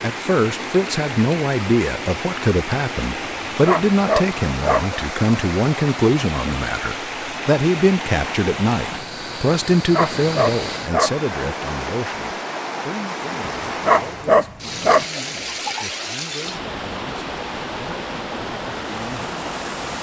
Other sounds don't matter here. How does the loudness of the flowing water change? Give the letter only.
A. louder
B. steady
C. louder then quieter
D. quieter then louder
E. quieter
B.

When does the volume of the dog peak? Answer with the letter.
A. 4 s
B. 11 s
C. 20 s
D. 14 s
D.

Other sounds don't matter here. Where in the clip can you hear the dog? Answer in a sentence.
You can hear the dog from 3.2 to 4.8 s, from 9.8 to 11.2 s and from 13.7 to 15.1 s.